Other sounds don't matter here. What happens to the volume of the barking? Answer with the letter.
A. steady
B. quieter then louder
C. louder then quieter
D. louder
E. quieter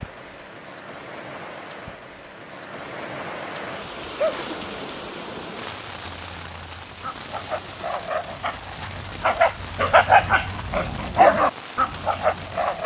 D.